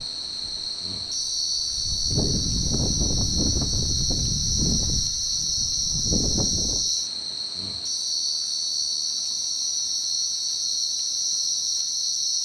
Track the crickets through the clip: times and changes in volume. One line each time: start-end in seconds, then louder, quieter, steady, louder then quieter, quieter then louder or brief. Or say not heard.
0.0-12.4 steady.